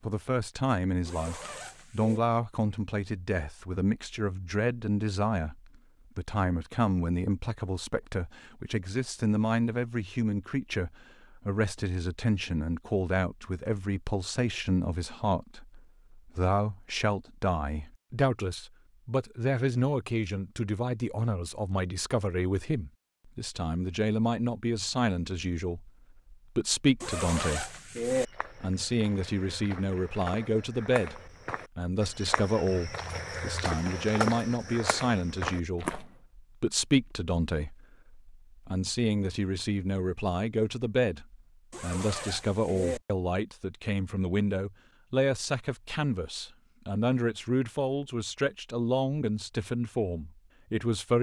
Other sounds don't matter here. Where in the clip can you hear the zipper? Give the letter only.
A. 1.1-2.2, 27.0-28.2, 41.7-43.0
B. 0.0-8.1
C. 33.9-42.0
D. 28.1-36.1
A.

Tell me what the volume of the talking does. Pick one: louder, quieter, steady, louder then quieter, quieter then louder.
steady.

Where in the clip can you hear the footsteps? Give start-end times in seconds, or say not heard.
28.1-36.1.